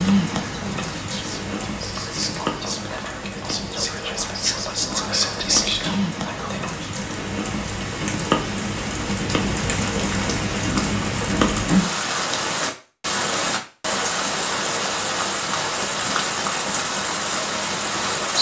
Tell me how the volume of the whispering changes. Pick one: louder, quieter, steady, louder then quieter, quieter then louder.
louder.